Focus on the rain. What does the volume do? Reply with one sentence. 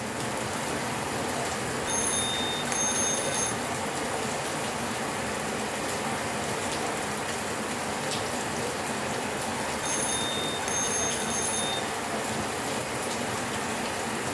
The volume of the rain stays about the same.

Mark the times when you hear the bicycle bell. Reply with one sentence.
You can hear the bicycle bell from 1.9 to 3.5 s and from 9.8 to 11.8 s.